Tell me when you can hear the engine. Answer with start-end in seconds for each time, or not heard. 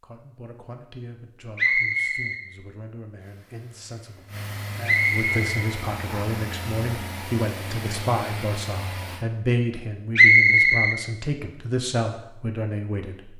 3.1-9.2.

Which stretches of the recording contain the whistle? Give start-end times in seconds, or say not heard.
1.6-2.4, 4.8-6.4, 10.2-10.9.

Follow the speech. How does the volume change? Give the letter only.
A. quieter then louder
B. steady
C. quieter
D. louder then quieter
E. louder
E.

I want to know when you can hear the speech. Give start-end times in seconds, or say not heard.
0.0-13.3.